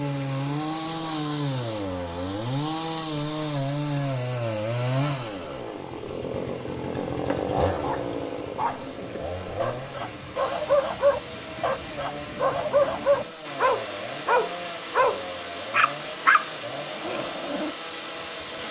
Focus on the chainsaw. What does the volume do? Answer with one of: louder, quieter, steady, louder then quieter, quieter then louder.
quieter.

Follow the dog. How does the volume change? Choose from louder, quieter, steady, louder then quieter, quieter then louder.
louder.